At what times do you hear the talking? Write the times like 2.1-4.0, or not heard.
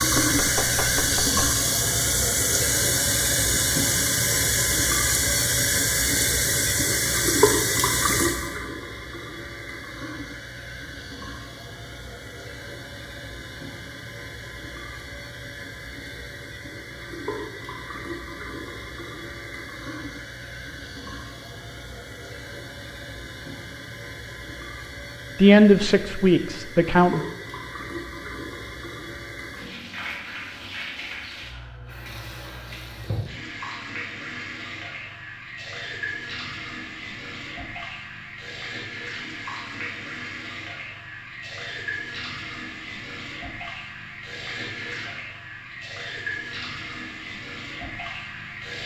25.4-27.2.